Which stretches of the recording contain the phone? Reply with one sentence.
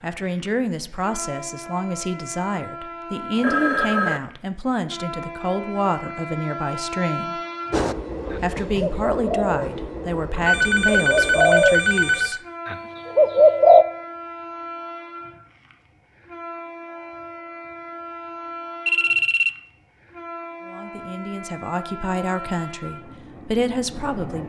You can hear the phone from 3.4 to 4.2 s, from 10.4 to 12.4 s and from 18.9 to 19.5 s.